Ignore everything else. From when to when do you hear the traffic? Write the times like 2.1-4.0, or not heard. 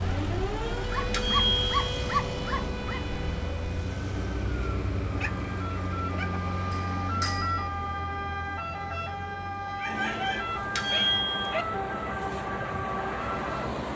0.0-13.9.